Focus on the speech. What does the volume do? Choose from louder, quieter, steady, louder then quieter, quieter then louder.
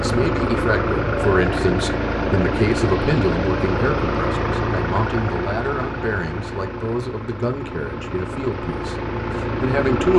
quieter.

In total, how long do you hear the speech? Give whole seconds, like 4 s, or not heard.
10 s.